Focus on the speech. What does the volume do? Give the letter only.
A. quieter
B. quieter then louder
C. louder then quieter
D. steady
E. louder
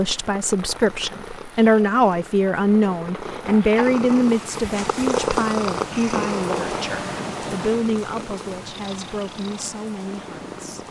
A.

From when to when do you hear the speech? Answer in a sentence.
You can hear the speech from 0.0 to 10.8 s.